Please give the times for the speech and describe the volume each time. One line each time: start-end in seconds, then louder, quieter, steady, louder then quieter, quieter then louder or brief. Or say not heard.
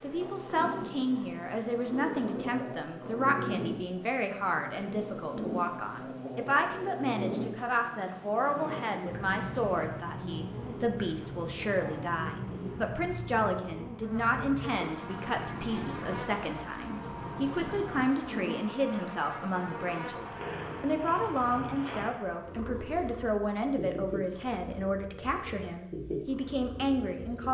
0.0-27.5 steady.